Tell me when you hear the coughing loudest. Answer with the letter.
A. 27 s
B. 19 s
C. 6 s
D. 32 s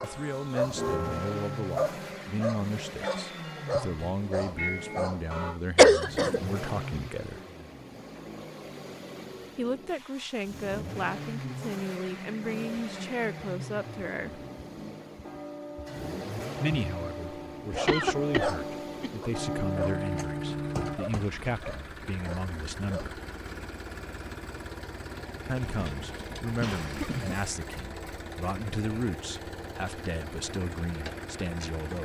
C.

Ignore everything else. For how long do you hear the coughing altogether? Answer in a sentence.
The coughing can be heard for 4 seconds in total.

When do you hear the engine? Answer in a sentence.
You can hear the engine from 0.0 to 31.9 s.